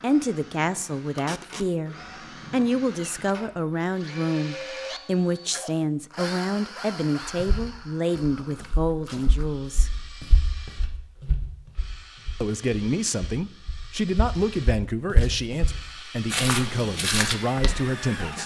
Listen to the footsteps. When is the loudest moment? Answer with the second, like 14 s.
17 s.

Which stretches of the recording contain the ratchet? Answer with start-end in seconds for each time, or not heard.
not heard.